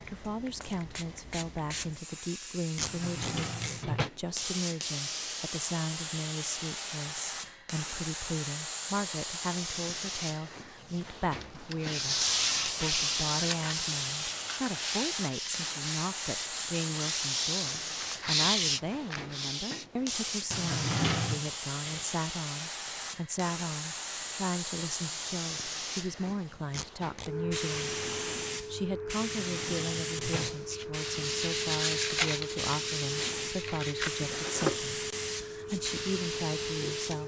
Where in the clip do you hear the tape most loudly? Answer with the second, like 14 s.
3 s.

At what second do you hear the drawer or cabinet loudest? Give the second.
21 s.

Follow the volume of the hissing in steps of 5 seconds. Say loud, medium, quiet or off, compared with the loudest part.
medium, loud, loud, loud, loud, loud, loud, loud.